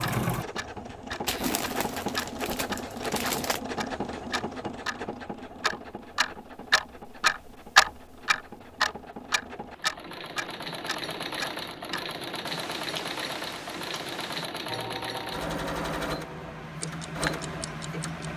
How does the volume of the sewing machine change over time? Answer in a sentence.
The volume of the sewing machine goes down, then up.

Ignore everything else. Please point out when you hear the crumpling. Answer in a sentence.
The crumpling can be heard from 1.2 to 3.6 s.